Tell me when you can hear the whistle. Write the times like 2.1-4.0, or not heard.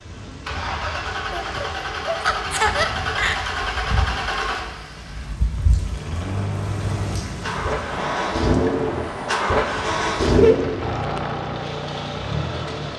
not heard.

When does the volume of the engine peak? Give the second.
10 s.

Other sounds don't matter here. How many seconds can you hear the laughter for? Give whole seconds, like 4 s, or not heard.
3 s.